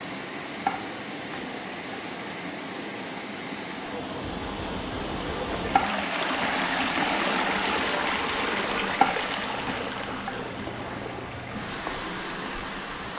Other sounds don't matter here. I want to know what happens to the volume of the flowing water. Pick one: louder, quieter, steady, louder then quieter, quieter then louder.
louder then quieter.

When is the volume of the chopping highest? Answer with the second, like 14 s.
9 s.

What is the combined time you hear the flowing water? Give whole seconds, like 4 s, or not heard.
13 s.